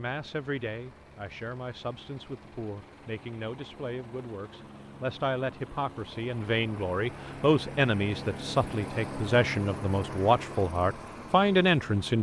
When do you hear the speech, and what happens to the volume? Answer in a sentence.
You can hear the speech from 0.0 to 12.1 s, getting louder.